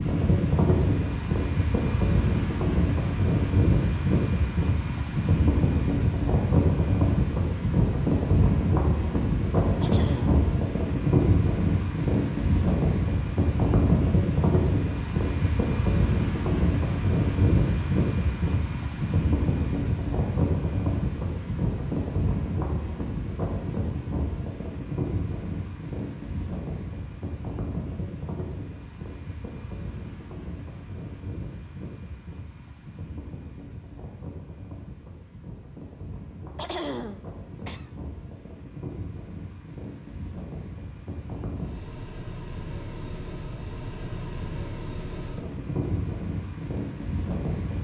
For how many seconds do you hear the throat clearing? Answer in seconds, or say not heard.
2 s.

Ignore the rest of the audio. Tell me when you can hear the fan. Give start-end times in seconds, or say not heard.
0.0-47.8.